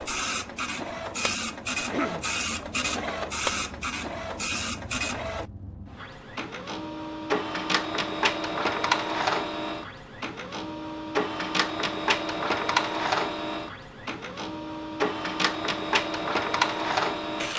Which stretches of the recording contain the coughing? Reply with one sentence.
You can hear the coughing from 1.8 to 2.3 s.